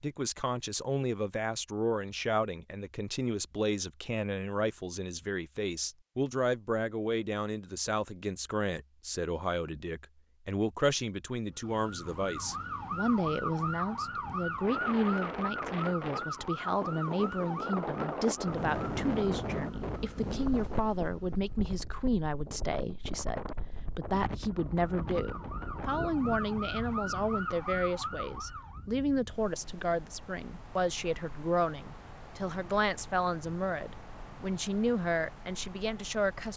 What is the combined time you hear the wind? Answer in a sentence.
You can hear the wind for 22 seconds altogether.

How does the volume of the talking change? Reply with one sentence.
The loudness of the talking stays about the same.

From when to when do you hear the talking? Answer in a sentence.
You can hear the talking from 0.0 to 36.5 s.